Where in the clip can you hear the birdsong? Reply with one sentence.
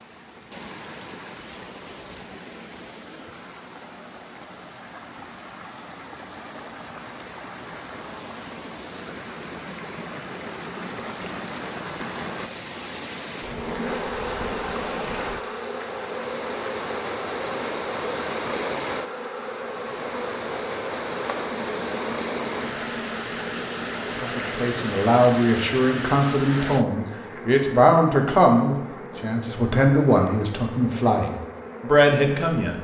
You can't hear the birdsong here.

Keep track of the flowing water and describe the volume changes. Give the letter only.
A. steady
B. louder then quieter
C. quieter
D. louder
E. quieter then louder
D.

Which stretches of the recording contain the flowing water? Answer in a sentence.
The flowing water can be heard from 0.0 to 26.9 s.